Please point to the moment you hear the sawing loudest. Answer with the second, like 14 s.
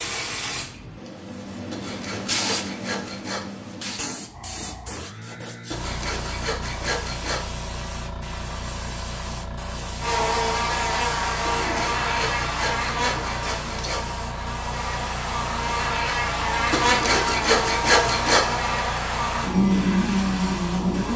18 s.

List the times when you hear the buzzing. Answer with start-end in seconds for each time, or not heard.
10.0-21.1.